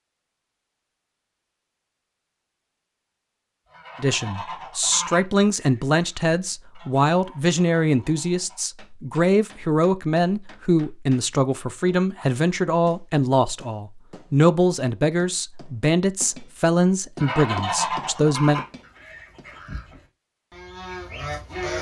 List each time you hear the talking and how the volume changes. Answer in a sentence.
You can hear the talking from 4.0 to 18.6 s, at a steady volume.